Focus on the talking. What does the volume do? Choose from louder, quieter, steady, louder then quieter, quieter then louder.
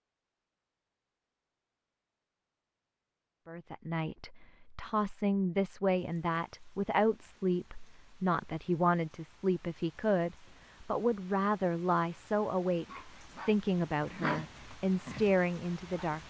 steady.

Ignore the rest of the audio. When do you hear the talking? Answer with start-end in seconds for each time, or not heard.
3.5-16.2.